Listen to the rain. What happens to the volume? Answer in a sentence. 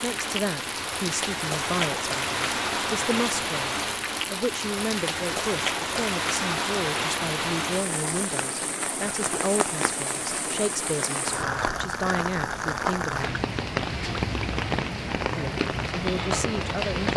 The volume of the rain stays about the same.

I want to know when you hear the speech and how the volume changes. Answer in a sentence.
The speech can be heard from 0.0 to 13.4 s, at a steady volume; and briefly from 15.3 to 17.1 s.